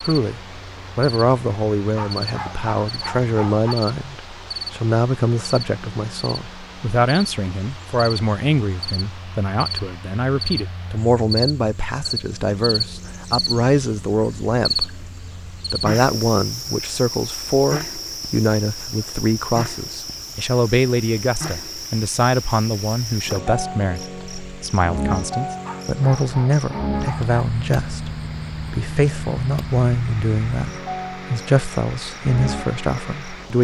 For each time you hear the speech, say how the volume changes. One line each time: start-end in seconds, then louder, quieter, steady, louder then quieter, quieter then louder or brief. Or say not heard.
0.1-33.6 steady.